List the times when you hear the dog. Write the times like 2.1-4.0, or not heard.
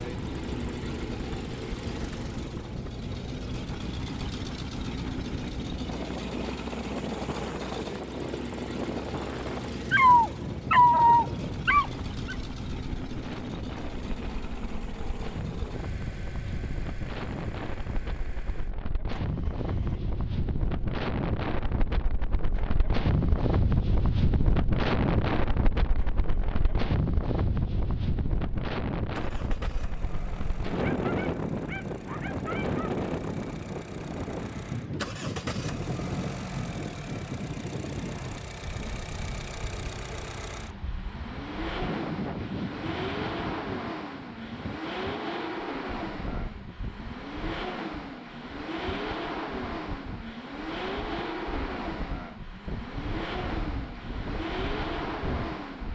9.9-12.3, 30.9-32.9.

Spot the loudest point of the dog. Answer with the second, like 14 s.
11 s.